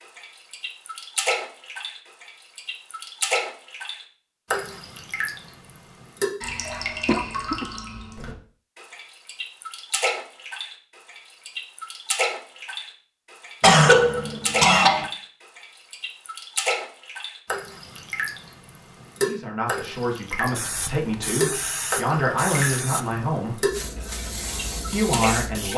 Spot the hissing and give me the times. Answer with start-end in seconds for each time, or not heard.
20.6-25.7.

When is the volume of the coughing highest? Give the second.
14 s.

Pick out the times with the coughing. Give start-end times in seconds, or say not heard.
7.0-7.7, 13.6-15.1.